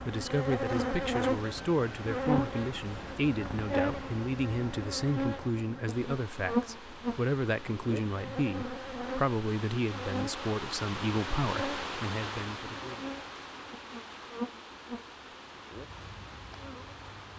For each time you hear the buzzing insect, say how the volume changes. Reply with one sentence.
The buzzing insect can be heard from 0.0 to 17.3 s, getting quieter.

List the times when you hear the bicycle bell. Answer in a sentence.
You can't hear the bicycle bell here.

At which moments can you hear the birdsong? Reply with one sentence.
The birdsong can't be heard in this clip.